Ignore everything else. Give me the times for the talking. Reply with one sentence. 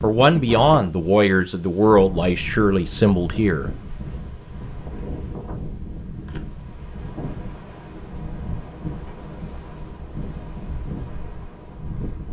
The talking can be heard from 0.0 to 3.7 s.